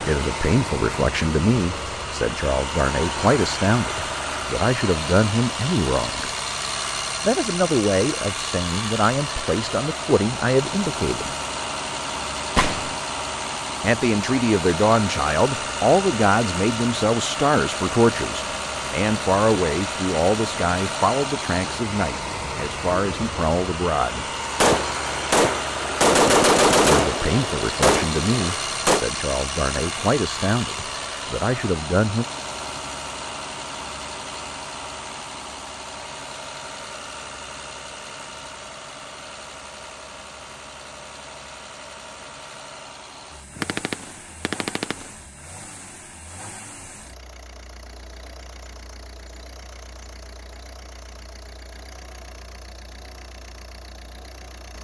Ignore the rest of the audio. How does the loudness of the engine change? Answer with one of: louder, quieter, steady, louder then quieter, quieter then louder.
quieter.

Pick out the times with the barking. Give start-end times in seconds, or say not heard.
not heard.